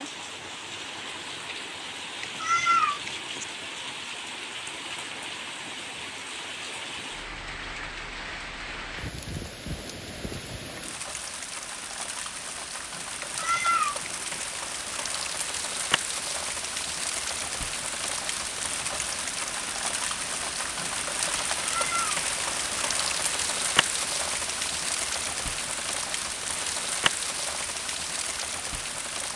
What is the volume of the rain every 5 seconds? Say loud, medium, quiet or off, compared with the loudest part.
medium, medium, medium, loud, loud, loud.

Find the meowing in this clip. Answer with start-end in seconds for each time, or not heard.
2.2-3.5, 13.2-14.4, 21.6-22.1.